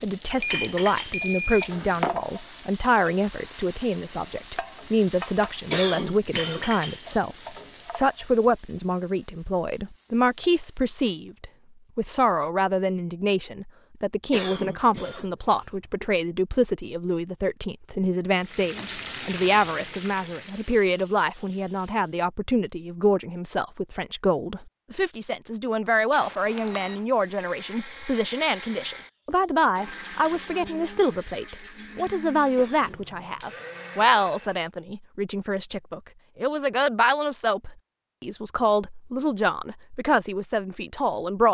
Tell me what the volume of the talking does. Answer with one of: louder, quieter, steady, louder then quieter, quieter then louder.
steady.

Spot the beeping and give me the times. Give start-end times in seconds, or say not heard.
0.4-2.3, 26.1-27.1.